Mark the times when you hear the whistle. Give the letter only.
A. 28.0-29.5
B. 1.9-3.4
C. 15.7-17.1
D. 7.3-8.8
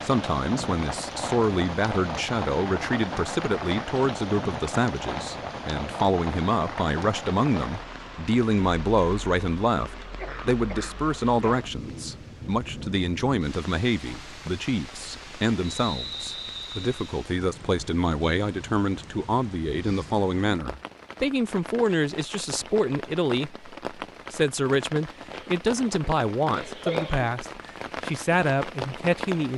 C.